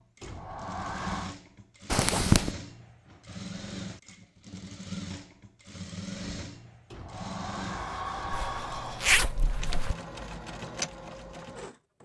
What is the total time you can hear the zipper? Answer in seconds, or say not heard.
2 s.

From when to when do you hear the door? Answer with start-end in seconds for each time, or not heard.
0.2-1.4, 6.9-9.1.